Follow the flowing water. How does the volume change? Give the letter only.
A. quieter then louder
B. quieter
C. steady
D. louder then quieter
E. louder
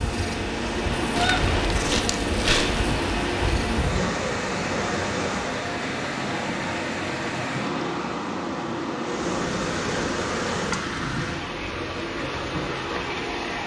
C.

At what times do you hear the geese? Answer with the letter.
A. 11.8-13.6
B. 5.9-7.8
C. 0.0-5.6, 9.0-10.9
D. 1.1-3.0
D.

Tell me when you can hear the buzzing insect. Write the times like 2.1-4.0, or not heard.
0.0-5.6, 9.0-10.9.